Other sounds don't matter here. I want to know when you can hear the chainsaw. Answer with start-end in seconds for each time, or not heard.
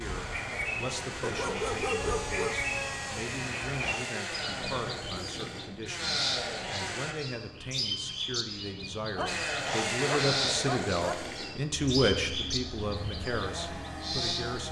0.0-7.2, 9.2-14.6.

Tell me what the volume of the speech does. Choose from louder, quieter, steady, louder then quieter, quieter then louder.
louder.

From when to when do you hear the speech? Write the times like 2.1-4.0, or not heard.
0.0-14.6.